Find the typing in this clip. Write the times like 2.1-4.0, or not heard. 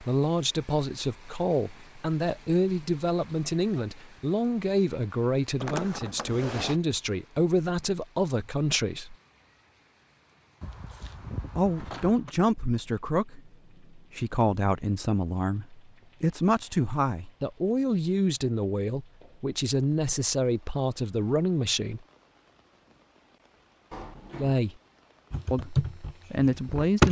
25.3-27.0.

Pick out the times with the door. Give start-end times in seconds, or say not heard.
5.6-6.8, 10.6-12.3, 23.9-24.6.